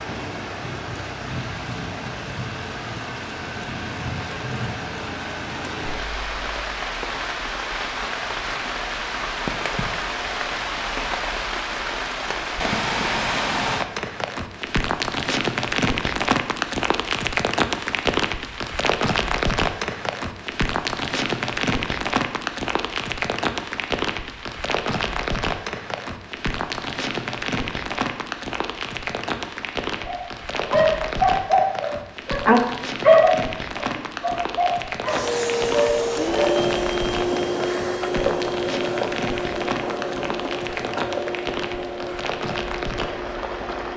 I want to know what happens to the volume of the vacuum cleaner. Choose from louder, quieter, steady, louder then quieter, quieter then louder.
quieter.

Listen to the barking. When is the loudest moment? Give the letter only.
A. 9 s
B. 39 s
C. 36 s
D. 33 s
D.